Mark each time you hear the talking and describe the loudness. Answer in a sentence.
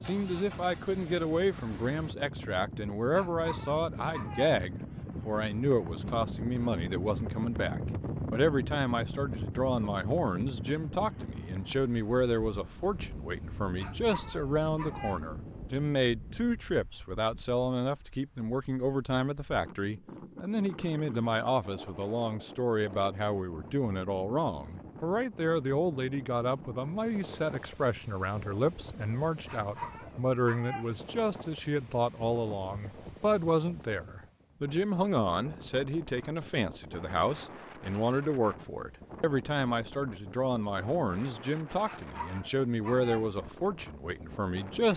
The talking can be heard from 0.0 to 44.9 s, at a steady volume.